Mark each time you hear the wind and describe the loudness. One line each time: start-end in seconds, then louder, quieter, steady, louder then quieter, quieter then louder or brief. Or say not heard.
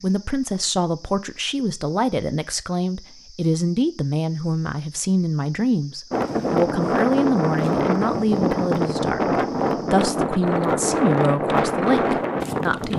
6.1-12.9 steady.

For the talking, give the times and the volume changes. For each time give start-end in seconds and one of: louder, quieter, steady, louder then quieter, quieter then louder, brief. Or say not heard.
0.0-12.9 steady.